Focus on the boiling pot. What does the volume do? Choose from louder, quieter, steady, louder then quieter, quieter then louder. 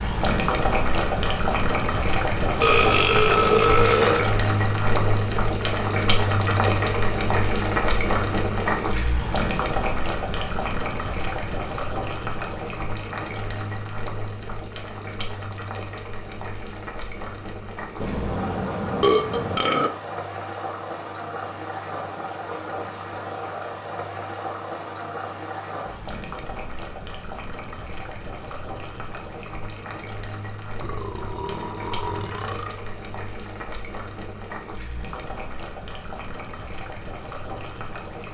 quieter.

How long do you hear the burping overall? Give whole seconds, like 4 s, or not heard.
6 s.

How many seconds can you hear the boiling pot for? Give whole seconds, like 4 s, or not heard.
38 s.